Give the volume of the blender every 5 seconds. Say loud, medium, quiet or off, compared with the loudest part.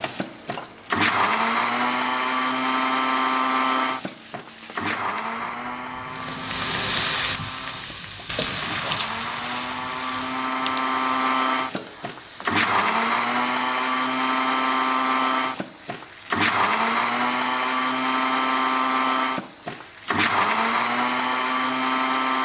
loud, medium, loud, loud, loud.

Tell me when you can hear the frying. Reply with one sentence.
The frying can be heard from 0.0 to 22.4 s.